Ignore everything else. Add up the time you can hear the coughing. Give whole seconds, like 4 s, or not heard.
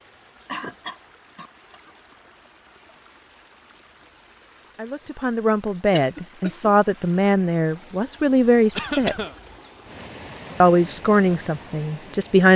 3 s.